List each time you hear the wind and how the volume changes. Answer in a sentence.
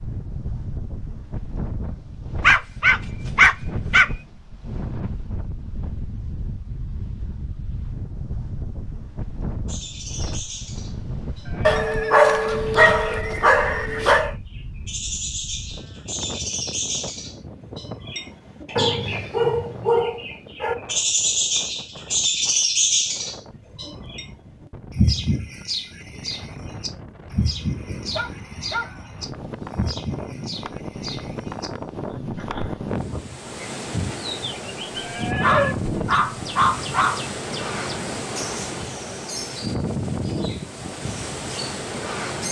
The wind can be heard from 0.0 to 42.4 s, getting quieter then louder.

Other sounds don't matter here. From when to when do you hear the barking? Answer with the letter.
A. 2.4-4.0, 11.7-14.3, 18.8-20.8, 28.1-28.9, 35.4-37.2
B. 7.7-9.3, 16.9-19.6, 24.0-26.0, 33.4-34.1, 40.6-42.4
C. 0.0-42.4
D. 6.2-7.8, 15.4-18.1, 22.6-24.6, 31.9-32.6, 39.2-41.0
A.